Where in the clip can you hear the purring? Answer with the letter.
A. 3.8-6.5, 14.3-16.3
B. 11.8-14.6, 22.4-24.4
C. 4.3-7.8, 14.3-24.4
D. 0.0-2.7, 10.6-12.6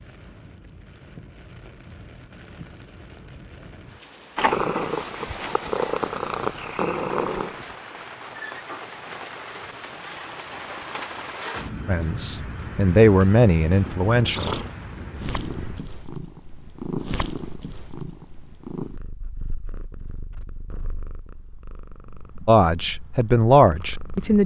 C.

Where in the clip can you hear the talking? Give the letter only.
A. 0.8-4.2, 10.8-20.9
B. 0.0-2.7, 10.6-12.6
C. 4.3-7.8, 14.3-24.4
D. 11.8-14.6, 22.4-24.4
D.